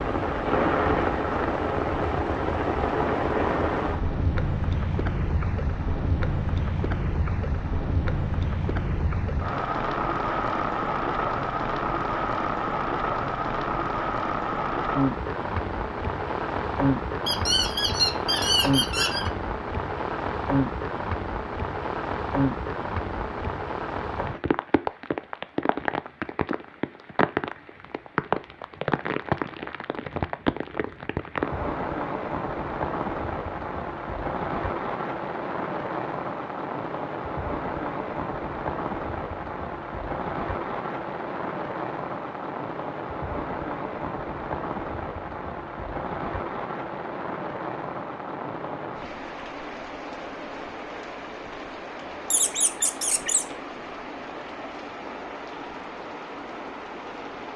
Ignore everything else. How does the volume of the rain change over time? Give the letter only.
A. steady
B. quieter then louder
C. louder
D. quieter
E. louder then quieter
D.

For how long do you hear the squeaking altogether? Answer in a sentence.
You can hear the squeaking for 3 seconds altogether.